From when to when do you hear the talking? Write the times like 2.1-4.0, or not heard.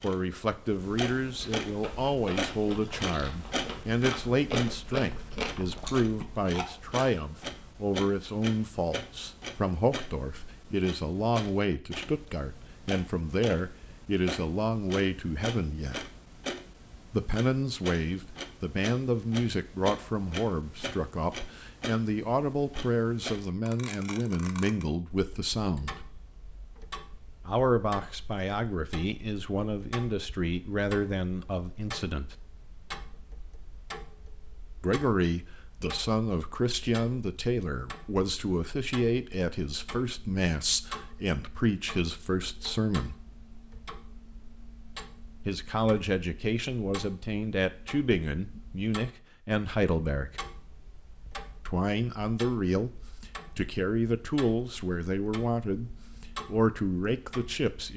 0.0-16.0, 17.1-26.0, 27.4-32.4, 34.8-43.2, 45.5-50.4, 51.6-57.9.